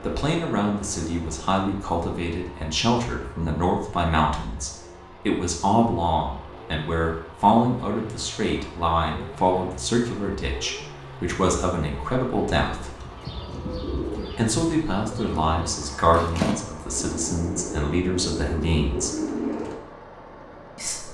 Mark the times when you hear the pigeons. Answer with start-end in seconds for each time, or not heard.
12.6-19.8.